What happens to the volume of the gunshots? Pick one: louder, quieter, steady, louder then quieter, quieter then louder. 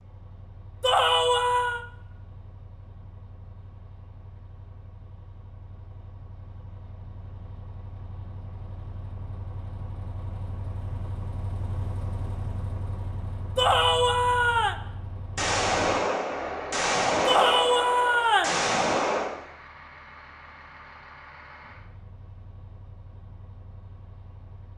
quieter then louder.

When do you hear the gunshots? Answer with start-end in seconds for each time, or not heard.
15.3-19.4.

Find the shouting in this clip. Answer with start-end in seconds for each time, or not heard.
0.8-1.9, 13.6-14.8, 17.2-18.6.